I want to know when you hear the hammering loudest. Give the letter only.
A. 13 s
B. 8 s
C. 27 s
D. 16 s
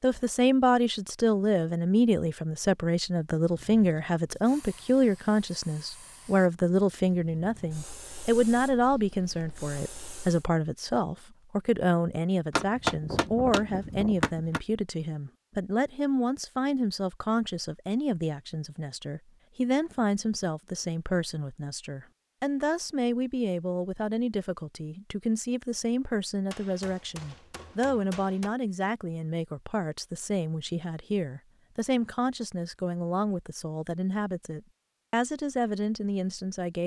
A.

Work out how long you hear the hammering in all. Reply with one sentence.
The hammering can be heard for 4 seconds in total.